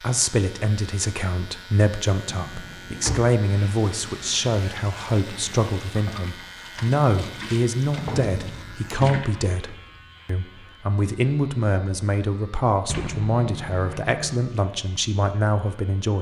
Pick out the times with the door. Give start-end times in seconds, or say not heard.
2.2-3.3, 8.0-8.8, 12.8-14.4.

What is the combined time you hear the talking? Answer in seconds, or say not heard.
16 s.